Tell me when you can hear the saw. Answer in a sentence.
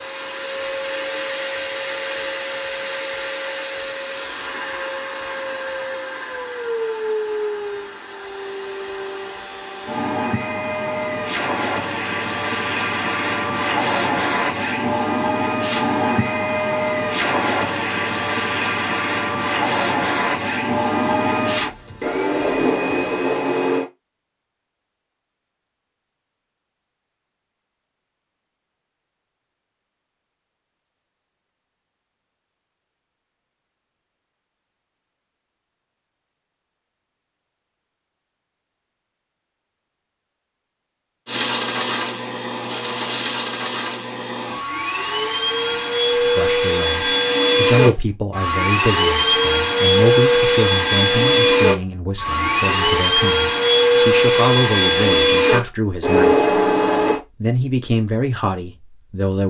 You can't hear the saw here.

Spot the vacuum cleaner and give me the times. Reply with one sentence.
You can hear the vacuum cleaner from 0.0 to 23.9 s and from 41.2 to 57.2 s.